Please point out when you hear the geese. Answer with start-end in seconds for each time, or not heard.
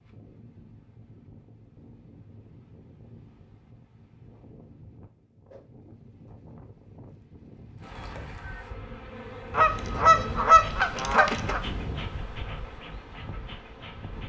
9.5-11.6.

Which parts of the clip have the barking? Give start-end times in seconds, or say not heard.
not heard.